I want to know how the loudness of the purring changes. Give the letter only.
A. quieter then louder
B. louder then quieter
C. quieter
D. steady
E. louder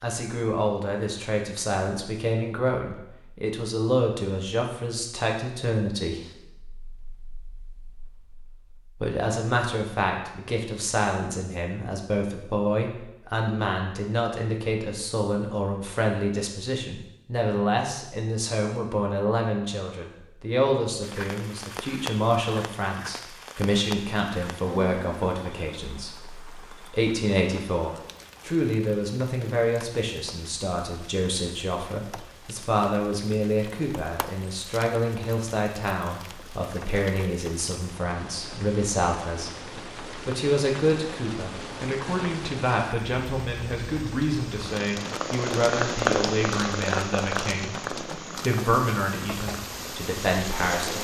C.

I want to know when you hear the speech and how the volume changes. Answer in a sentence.
You can hear the speech from 0.0 to 51.0 s, at a steady volume.